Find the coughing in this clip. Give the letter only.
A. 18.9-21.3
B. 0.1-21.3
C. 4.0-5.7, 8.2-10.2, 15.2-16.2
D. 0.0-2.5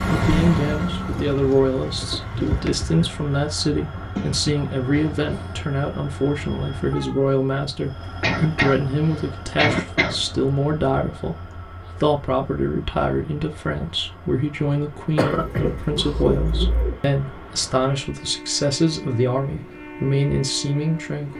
C.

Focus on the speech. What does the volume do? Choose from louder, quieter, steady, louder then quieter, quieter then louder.
steady.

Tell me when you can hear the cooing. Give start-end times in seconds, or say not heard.
1.1-3.1, 15.3-16.9.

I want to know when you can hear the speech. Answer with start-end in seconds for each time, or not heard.
0.1-21.3.